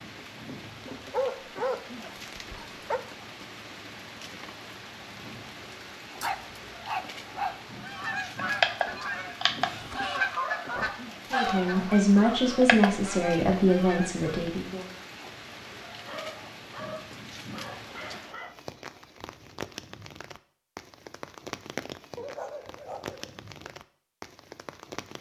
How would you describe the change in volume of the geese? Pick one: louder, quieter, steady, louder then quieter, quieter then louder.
quieter.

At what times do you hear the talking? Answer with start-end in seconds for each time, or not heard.
11.3-14.8.